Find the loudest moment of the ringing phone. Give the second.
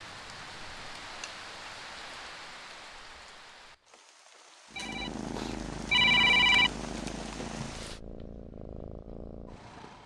6 s.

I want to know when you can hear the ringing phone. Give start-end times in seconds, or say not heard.
4.8-6.7.